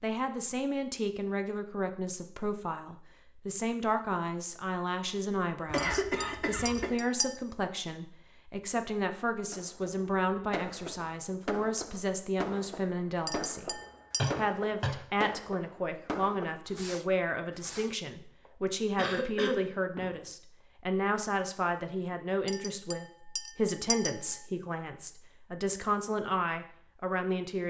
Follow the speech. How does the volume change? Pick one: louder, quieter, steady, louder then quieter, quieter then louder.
steady.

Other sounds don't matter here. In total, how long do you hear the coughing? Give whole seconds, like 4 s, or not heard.
3 s.